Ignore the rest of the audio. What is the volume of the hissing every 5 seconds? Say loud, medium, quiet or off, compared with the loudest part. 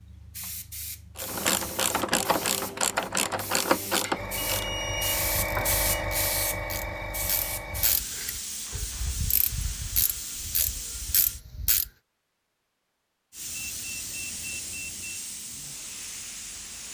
medium, loud, medium, medium.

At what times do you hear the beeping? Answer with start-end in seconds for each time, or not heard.
4.3-5.8, 13.4-15.2.